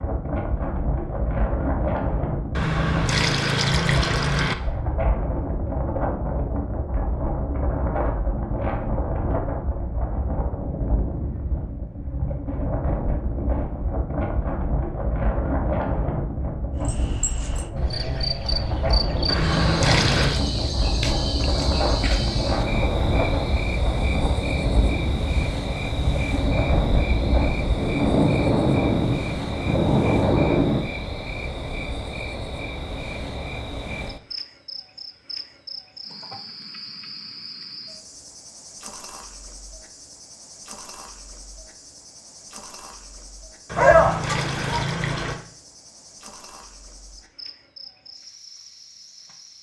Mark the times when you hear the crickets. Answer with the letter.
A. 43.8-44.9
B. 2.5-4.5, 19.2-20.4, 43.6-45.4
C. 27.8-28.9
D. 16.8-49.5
D.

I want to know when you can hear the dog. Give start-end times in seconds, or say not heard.
43.8-44.9.